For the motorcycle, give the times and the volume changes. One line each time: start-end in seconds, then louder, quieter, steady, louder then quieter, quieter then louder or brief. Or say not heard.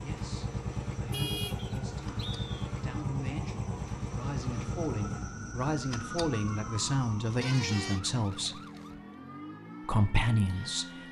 0.0-11.0 quieter.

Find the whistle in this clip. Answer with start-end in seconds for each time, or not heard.
1.6-2.7.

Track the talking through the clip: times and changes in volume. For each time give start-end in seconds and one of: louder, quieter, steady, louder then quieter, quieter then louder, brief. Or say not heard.
0.0-8.6 louder
9.8-11.0 brief.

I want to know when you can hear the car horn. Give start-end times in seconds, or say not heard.
1.1-1.8, 7.4-8.0.